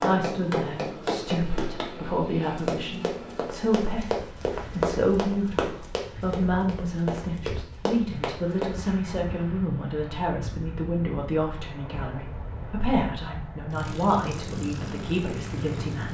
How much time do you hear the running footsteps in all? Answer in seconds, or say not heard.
9 s.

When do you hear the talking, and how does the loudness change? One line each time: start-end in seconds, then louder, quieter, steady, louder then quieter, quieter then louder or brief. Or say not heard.
0.0-16.0 steady.